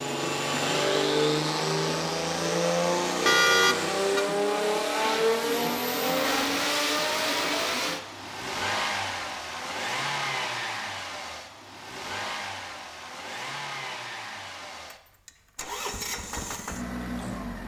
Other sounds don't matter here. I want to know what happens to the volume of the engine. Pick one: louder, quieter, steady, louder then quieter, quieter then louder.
quieter.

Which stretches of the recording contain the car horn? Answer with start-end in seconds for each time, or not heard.
3.2-4.2.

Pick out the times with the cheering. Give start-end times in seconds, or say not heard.
not heard.